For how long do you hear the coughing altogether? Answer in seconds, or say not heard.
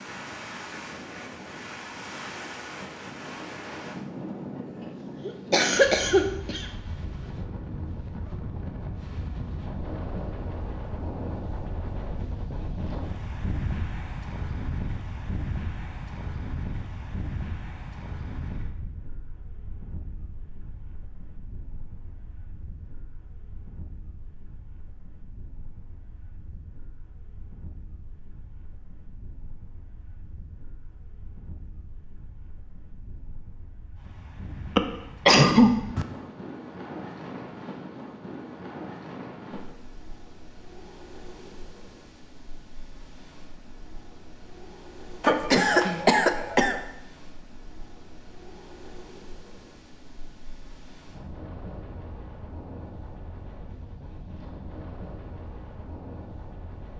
4 s.